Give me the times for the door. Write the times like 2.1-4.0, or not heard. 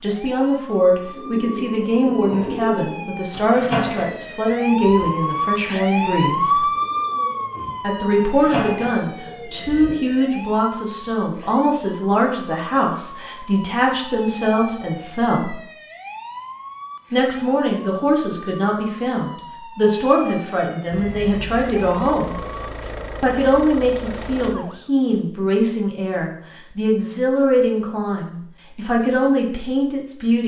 not heard.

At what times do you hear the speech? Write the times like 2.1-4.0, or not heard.
0.0-6.7, 7.8-15.6, 17.1-22.4, 23.2-30.4.